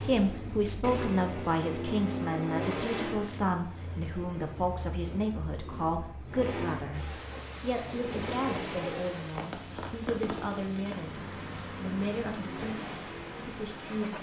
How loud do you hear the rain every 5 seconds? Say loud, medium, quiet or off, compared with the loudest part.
off, loud, loud.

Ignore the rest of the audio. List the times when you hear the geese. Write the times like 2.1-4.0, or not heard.
not heard.